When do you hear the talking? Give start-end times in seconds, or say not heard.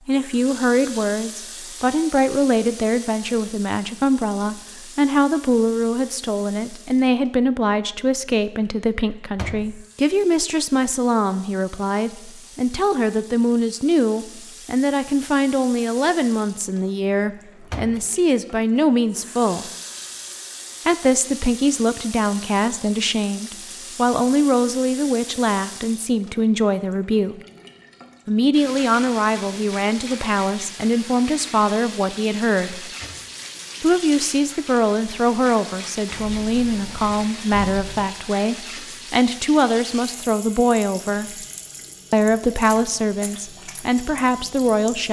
0.1-19.7, 20.9-27.4, 28.2-32.9, 33.8-41.5, 42.1-45.0.